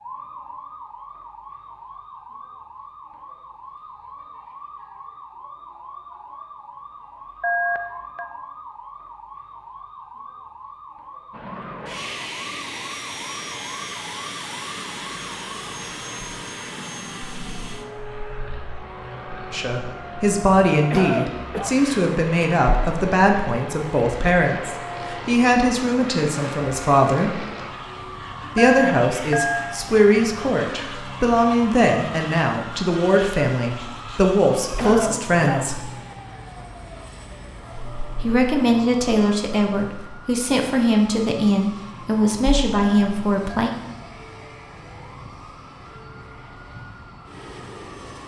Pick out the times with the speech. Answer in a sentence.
You can hear the speech from 19.5 to 27.4 s, from 28.6 to 35.8 s and from 38.2 to 43.7 s.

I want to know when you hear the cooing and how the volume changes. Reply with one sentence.
You can't hear the cooing here.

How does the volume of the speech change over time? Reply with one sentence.
The loudness of the speech stays about the same.